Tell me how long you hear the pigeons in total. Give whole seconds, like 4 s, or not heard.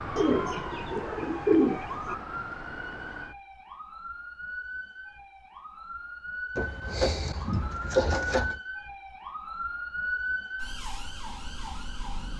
4 s.